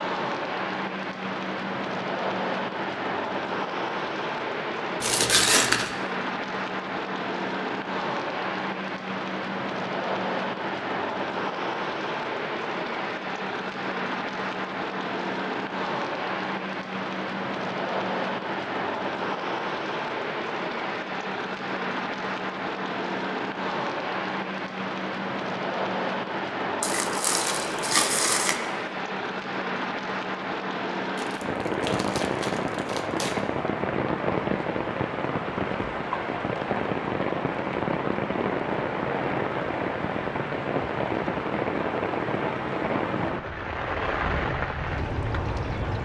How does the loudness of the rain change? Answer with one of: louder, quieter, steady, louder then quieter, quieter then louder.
steady.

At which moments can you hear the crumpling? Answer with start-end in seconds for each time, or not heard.
5.0-5.9, 26.8-28.6, 31.1-33.4.